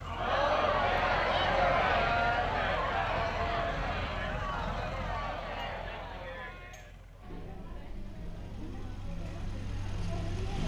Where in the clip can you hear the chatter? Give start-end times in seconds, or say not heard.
0.0-10.6.